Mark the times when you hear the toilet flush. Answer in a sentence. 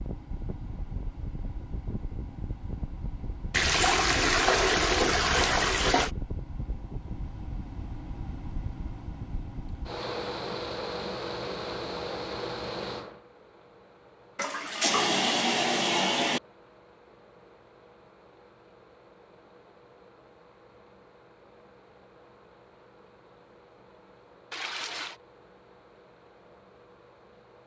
The toilet flush can be heard from 3.5 to 6.1 s, from 14.3 to 16.4 s and from 24.5 to 25.2 s.